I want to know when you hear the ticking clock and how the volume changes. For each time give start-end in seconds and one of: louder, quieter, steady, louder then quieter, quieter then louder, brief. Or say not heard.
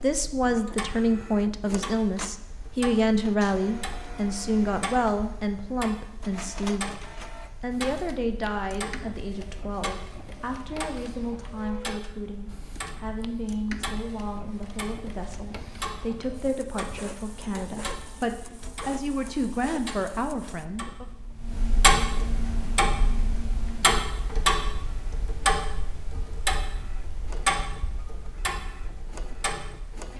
0.0-30.1 louder.